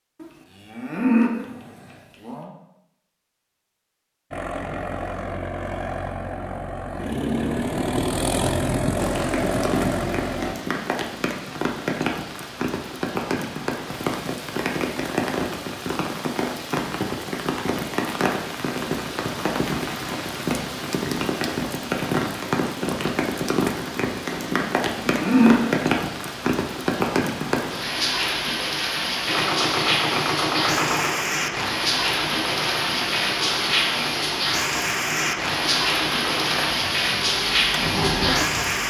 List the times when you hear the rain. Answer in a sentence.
You can hear the rain from 8.9 to 38.8 s.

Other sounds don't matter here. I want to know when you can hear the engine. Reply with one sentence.
The engine can be heard from 4.3 to 10.6 s and from 29.2 to 38.8 s.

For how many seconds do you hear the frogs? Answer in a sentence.
The frogs can't be heard in this clip.